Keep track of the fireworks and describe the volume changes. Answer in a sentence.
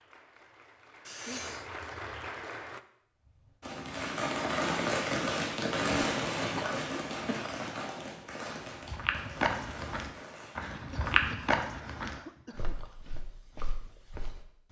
The loudness of the fireworks goes down.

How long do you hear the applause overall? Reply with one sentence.
You can hear the applause for 3 seconds altogether.